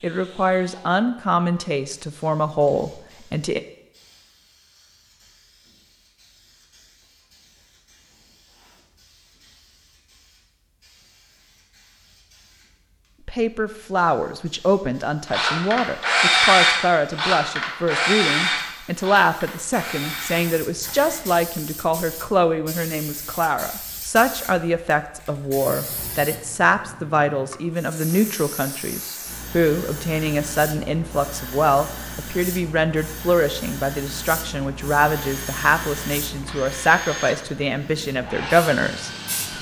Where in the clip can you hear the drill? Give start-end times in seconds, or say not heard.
15.2-21.2, 35.1-39.5.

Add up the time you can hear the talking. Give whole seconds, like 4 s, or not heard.
30 s.